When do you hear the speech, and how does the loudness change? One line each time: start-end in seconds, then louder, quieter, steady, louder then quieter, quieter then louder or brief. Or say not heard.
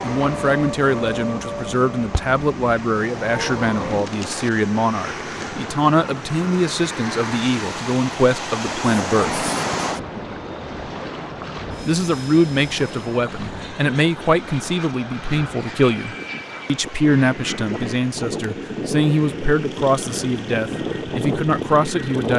0.0-9.4 steady
11.8-22.3 steady.